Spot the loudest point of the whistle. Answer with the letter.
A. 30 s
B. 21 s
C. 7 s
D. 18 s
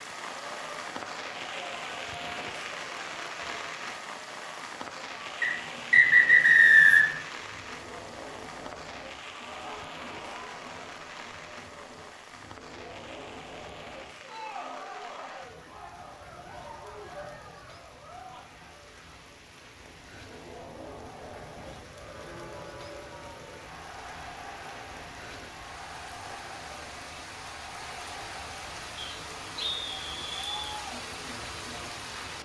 C.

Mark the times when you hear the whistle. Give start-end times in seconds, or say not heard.
5.4-7.2, 28.9-30.6.